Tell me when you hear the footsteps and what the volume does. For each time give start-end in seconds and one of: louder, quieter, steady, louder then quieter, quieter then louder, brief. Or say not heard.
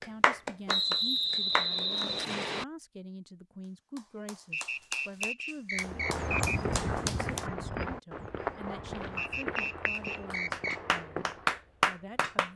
5.8-11.6 quieter.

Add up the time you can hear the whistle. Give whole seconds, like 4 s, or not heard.
6 s.